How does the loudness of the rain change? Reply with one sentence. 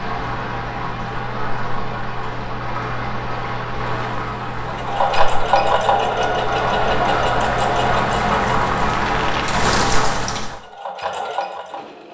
The volume of the rain goes up.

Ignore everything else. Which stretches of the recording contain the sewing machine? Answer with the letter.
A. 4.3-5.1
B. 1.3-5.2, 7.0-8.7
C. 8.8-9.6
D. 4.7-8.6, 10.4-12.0
D.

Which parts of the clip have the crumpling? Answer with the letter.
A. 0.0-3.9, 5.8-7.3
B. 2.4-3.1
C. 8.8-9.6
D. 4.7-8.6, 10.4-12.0
C.